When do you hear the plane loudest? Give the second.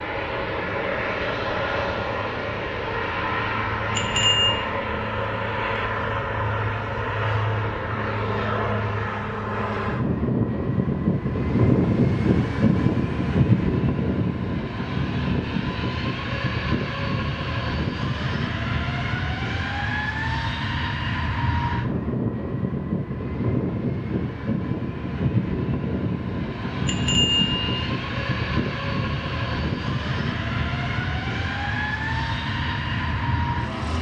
12 s.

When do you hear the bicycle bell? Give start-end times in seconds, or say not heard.
3.9-4.7, 26.9-27.7.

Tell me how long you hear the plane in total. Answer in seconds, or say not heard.
34 s.